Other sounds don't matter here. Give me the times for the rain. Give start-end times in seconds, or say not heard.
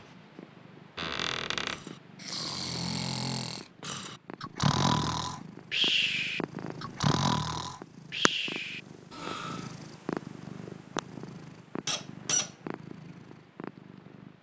not heard.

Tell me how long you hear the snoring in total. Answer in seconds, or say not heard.
8 s.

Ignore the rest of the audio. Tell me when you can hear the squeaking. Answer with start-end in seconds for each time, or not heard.
0.9-1.8, 11.8-12.5.